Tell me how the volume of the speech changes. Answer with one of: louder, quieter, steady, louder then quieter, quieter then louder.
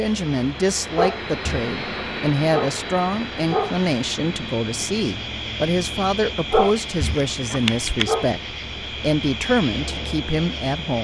steady.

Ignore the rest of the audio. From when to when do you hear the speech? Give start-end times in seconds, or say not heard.
0.0-10.9.